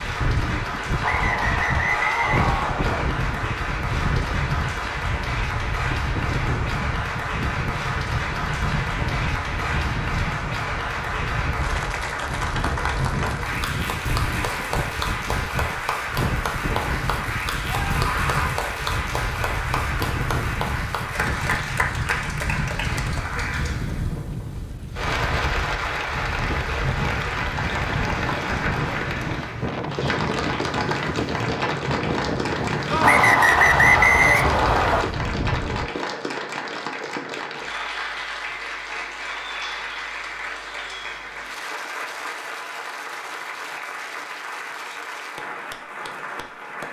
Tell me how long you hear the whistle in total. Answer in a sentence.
The whistle can be heard for 4 seconds in total.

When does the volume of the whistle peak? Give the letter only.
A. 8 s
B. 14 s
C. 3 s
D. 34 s
D.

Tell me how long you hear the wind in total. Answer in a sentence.
The wind can be heard for 36 seconds in total.